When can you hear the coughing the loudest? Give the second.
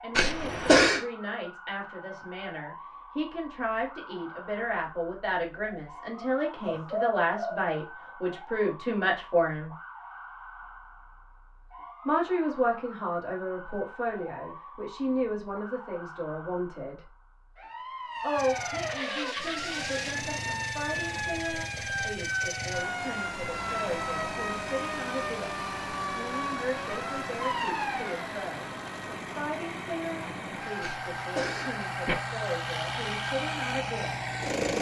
1 s.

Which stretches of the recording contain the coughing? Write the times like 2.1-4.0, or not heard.
0.1-1.1, 30.8-32.1.